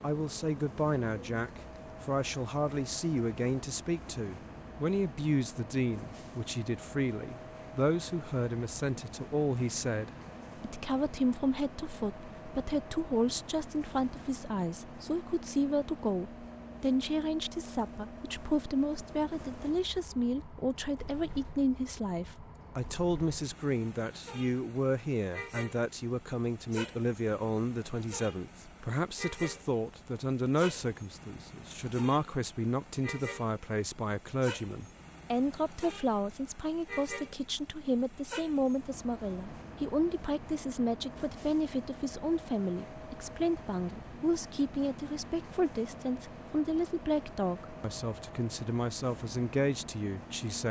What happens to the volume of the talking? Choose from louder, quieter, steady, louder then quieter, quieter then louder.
steady.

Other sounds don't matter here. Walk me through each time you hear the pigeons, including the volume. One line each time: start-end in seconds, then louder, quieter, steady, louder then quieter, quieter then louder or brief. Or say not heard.
not heard.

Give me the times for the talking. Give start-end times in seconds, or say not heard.
0.0-50.6.